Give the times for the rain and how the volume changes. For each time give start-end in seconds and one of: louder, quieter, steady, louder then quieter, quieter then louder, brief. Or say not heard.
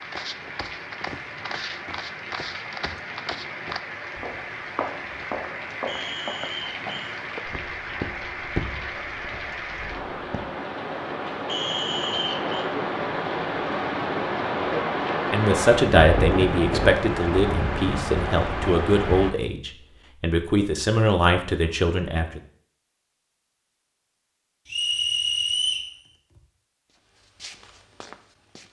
0.0-19.4 louder.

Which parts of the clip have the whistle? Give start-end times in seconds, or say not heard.
5.8-7.2, 11.4-12.7, 24.6-25.9.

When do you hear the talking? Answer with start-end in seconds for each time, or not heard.
15.3-22.4.